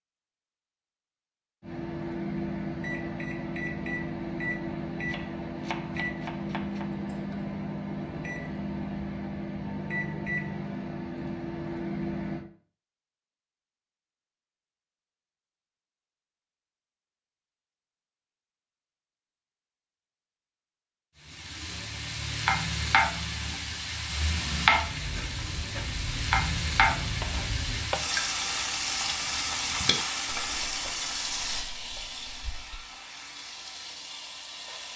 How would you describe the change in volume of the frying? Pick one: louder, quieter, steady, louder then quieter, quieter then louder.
quieter.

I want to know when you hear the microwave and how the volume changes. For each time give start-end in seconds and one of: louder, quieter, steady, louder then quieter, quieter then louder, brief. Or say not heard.
1.6-12.4 steady.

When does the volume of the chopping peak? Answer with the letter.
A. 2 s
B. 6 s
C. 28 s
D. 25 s
C.